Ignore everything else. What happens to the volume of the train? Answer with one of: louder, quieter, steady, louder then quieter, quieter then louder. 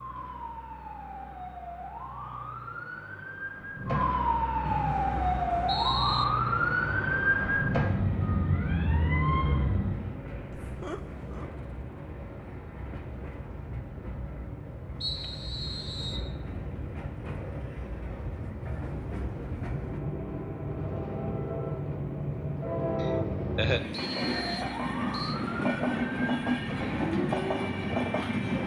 louder.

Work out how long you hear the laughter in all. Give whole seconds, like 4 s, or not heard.
2 s.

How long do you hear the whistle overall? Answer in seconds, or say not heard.
4 s.